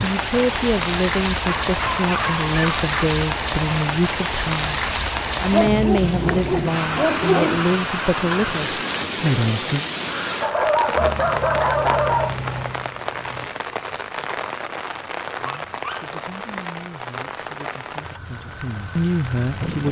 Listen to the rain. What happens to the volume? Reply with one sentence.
The loudness of the rain goes down.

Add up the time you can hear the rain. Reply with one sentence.
The rain can be heard for 20 seconds in total.